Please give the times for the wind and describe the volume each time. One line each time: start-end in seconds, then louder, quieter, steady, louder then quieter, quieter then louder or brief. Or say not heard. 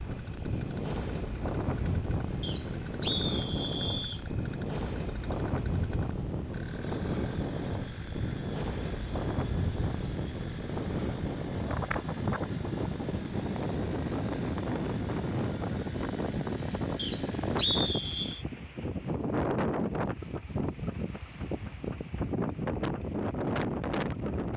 0.0-24.5 steady.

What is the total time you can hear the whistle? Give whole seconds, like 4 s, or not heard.
3 s.